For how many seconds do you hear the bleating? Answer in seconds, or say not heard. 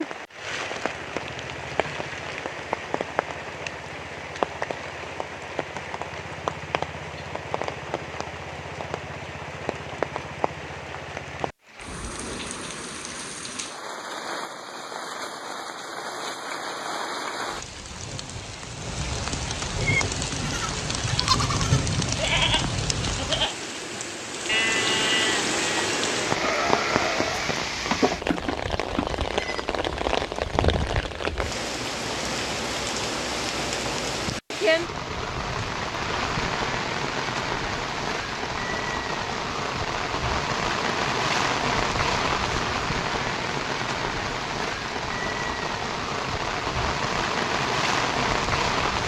10 s.